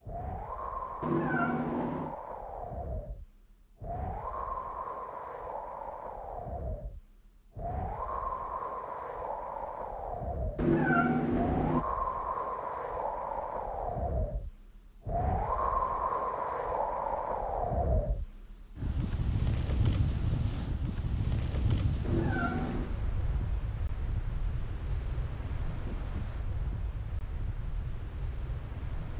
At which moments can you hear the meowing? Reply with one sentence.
You can hear the meowing from 1.0 to 2.1 s, from 10.6 to 11.8 s and from 22.0 to 22.9 s.